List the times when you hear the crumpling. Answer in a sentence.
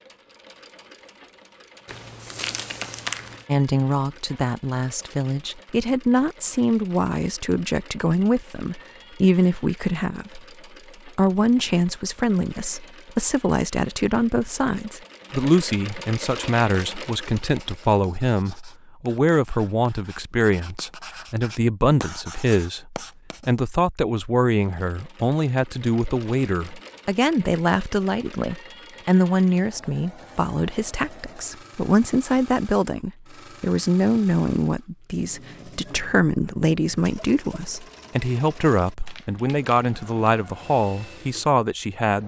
You can hear the crumpling from 1.9 to 3.5 s and from 39.0 to 39.9 s.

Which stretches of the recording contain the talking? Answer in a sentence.
You can hear the talking from 3.5 to 10.4 s and from 11.1 to 42.2 s.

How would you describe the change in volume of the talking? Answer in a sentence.
The loudness of the talking stays about the same.